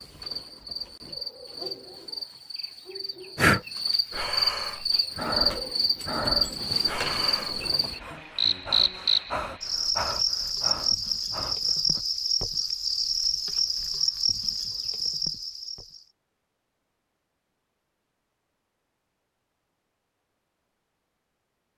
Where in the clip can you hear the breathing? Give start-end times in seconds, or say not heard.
3.4-12.0.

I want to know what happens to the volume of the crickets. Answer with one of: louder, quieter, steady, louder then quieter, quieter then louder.
louder.